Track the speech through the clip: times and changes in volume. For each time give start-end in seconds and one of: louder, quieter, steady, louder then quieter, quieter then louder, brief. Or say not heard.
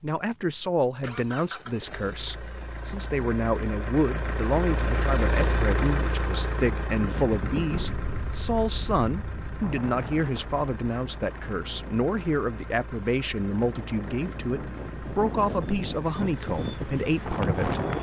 0.0-17.9 steady.